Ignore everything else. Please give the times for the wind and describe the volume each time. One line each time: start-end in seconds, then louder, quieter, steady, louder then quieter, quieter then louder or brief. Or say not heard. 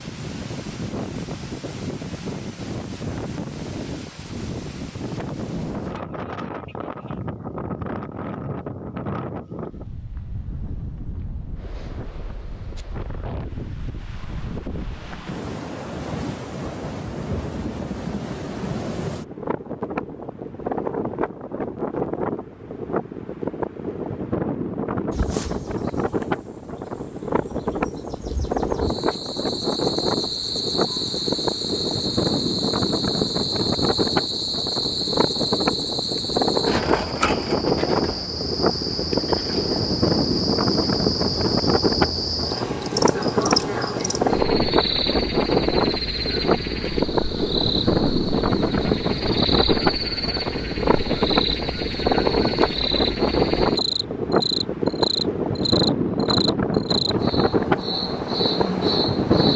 0.0-59.5 louder.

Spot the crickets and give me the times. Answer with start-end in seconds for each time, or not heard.
25.1-59.5.